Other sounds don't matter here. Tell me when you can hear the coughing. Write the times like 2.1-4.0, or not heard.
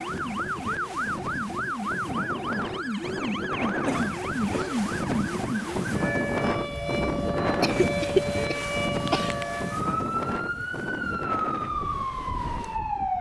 3.9-4.8, 7.6-9.4.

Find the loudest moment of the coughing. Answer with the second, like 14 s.
8 s.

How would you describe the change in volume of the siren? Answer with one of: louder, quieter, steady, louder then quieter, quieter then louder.
steady.